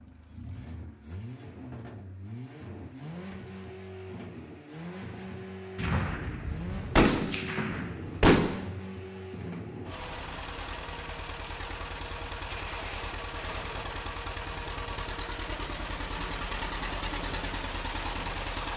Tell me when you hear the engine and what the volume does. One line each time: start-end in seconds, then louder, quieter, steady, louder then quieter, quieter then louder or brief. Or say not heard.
0.0-18.7 louder.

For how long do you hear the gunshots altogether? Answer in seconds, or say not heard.
3 s.